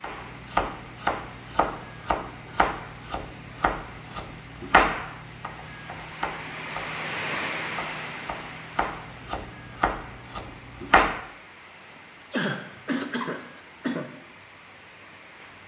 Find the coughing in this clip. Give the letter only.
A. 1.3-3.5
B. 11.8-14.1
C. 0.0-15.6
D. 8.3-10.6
B.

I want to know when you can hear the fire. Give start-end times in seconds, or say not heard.
not heard.